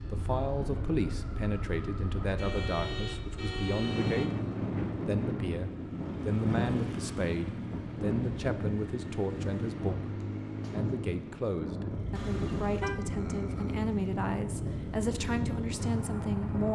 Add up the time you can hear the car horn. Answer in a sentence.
The car horn can be heard for 3 seconds in total.